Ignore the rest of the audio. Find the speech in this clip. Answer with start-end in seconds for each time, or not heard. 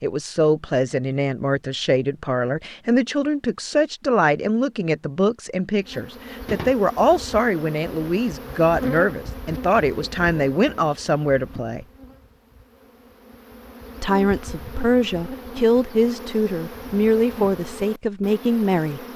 0.0-11.8, 14.0-19.0.